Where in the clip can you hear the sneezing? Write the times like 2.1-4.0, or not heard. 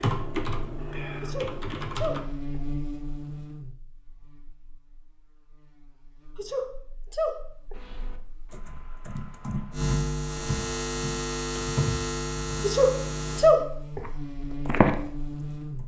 1.2-2.6, 6.3-7.8, 12.6-14.0.